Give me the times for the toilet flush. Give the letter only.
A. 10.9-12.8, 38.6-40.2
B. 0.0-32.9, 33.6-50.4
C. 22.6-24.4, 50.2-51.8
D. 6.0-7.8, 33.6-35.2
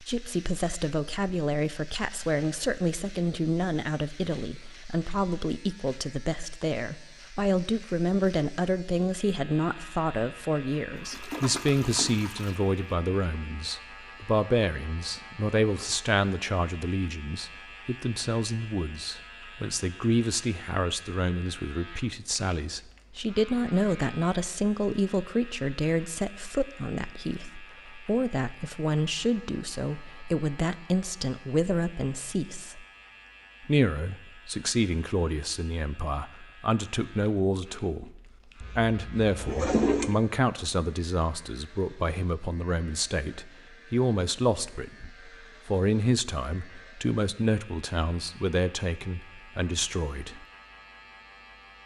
A.